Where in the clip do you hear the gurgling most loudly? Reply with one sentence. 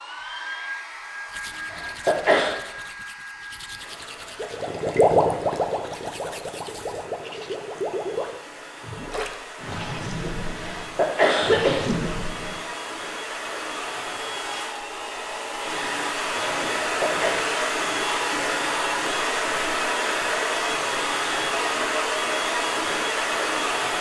The volume of the gurgling peaks at 5 seconds.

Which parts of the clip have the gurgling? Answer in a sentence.
You can hear the gurgling from 4.3 to 12.6 s.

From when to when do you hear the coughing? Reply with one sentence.
You can hear the coughing from 1.7 to 2.5 s, from 10.8 to 12.1 s and from 16.8 to 17.4 s.